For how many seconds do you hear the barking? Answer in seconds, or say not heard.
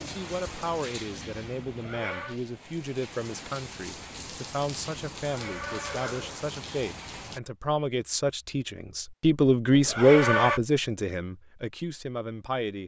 not heard.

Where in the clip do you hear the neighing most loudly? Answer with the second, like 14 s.
10 s.